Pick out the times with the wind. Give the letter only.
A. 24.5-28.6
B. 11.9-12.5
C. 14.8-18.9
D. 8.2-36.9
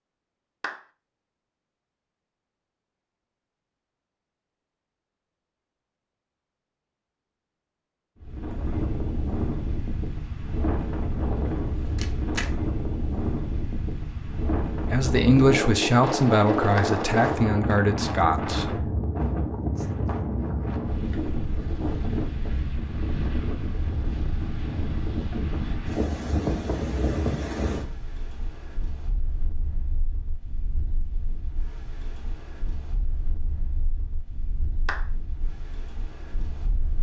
D.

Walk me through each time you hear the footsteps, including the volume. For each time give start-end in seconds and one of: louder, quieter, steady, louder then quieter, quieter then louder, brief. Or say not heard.
not heard.